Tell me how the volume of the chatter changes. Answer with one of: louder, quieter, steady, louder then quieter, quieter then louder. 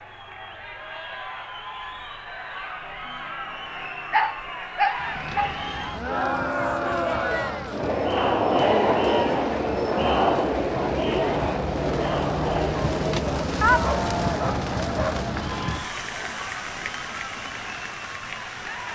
louder then quieter.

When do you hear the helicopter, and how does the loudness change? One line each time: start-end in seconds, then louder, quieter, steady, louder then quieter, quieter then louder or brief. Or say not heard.
not heard.